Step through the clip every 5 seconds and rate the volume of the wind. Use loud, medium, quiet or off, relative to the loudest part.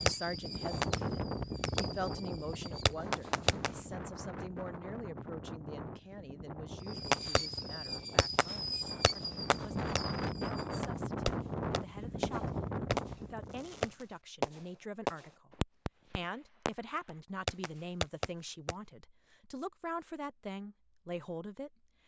loud, medium, loud, off, off.